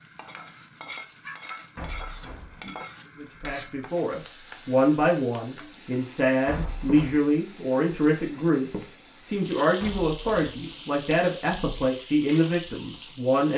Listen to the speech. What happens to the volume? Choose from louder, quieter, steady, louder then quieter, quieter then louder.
steady.